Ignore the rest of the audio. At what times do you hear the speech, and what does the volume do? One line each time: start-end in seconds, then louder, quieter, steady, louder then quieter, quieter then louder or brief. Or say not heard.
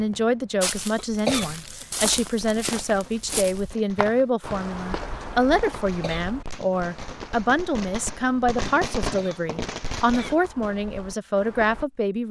0.0-12.2 steady.